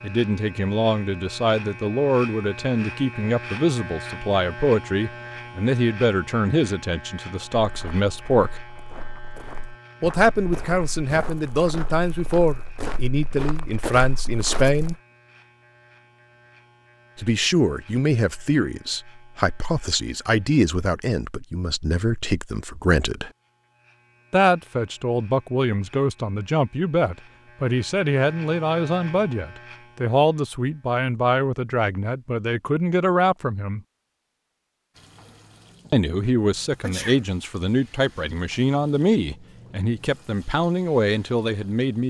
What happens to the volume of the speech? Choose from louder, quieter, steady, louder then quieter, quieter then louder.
steady.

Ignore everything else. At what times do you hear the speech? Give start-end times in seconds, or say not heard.
0.0-8.5, 10.0-14.9, 17.1-23.3, 24.3-33.8, 35.9-42.0.